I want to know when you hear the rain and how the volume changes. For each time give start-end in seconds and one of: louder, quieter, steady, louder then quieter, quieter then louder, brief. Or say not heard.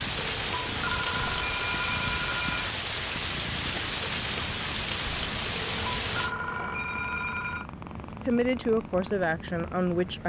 0.0-6.3 steady.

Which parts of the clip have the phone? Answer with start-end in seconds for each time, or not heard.
0.2-2.8, 5.5-7.7.